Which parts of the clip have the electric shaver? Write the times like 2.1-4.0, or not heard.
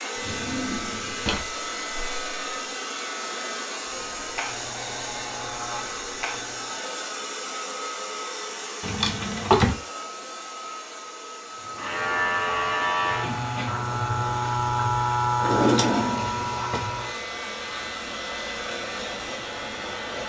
0.2-6.8, 11.6-20.2.